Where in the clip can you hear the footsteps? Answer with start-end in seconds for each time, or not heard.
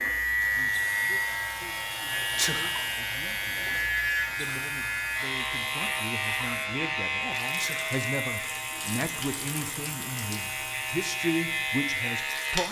not heard.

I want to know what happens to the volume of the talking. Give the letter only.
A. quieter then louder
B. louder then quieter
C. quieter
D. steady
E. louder
E.